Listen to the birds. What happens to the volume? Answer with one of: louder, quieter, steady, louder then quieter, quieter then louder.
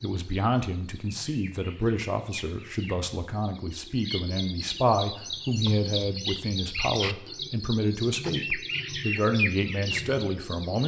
louder.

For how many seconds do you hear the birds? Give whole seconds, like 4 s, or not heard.
11 s.